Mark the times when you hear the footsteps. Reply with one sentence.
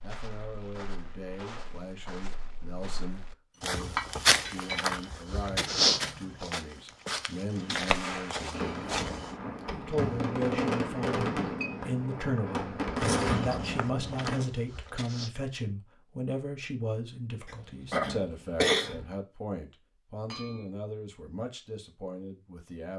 The footsteps can be heard from 0.0 to 9.3 s and from 13.0 to 15.3 s.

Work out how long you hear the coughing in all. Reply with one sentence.
The coughing can be heard for 2 seconds in total.